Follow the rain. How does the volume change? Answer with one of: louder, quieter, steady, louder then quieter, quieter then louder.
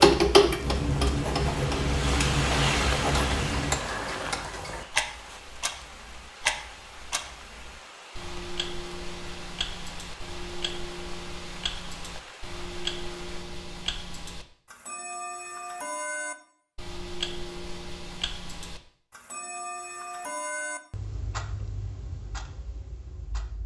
quieter.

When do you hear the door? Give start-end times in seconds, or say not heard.
not heard.